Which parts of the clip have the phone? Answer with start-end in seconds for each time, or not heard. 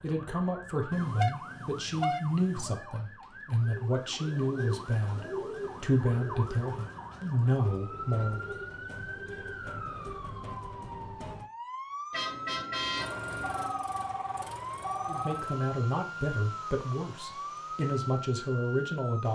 2.6-3.7, 13.4-15.3.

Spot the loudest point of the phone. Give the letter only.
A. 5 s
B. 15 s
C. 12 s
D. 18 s
B.